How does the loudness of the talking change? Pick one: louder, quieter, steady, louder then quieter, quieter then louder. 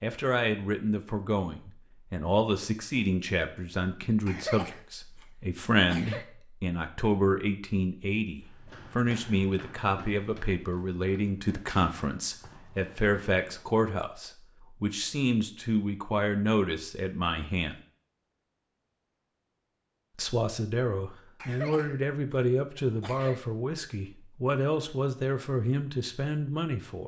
steady.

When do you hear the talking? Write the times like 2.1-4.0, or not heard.
0.0-17.8, 20.1-27.0.